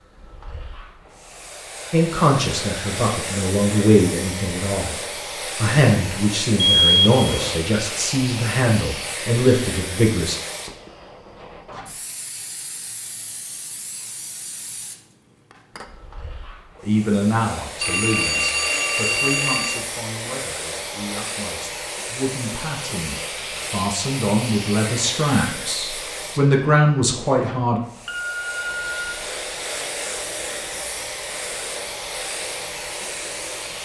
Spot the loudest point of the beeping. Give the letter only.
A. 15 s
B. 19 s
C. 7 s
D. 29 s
C.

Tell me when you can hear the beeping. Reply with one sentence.
The beeping can be heard from 6.8 to 7.6 s, from 17.8 to 19.8 s and from 28.1 to 29.1 s.